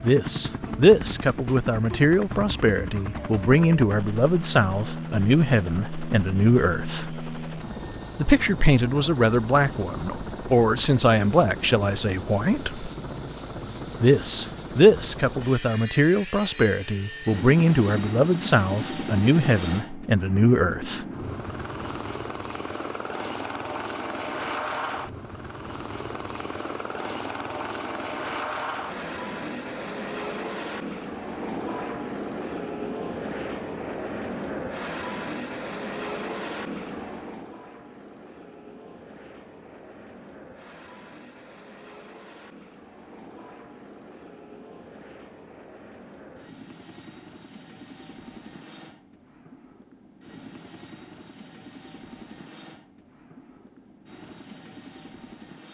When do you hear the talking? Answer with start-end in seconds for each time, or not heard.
0.0-7.0, 8.2-12.9, 14.0-21.1.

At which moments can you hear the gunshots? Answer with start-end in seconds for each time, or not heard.
not heard.